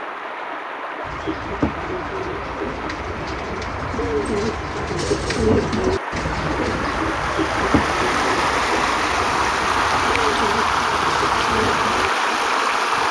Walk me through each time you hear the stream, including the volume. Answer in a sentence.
The stream can be heard from 0.0 to 13.0 s, getting louder.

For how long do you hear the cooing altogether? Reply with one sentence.
You can hear the cooing for 11 seconds altogether.